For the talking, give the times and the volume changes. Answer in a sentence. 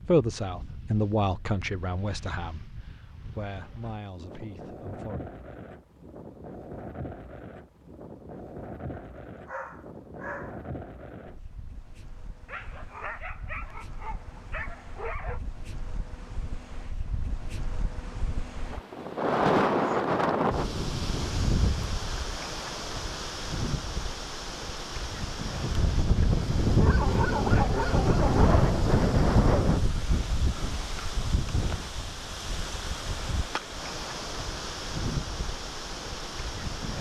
You can hear the talking from 0.1 to 5.2 s, getting quieter.